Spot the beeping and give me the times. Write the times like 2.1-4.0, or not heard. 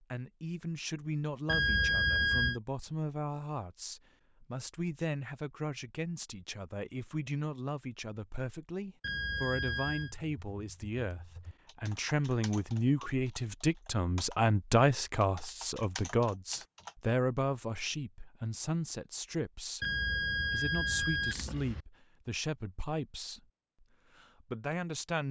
1.4-2.6, 9.0-10.1, 19.8-21.9.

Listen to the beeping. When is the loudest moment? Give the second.
2 s.